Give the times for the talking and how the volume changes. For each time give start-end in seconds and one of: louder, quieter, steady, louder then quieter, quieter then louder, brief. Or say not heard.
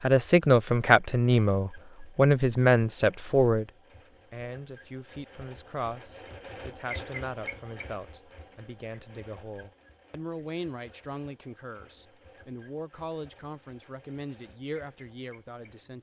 0.0-15.9 quieter.